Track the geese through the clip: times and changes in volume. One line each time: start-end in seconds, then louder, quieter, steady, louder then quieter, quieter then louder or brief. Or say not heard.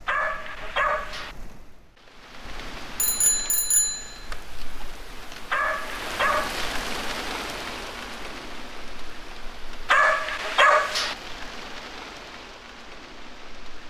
not heard.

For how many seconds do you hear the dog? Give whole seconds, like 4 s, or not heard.
4 s.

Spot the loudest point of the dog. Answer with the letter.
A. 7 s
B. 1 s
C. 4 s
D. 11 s
D.